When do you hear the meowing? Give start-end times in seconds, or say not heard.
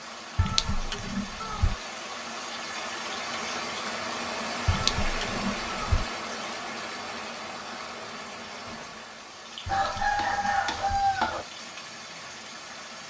0.3-1.8, 4.7-6.0, 9.7-11.1.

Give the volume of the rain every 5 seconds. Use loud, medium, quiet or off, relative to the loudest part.
loud, loud, medium.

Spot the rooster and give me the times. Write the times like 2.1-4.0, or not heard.
9.7-11.4.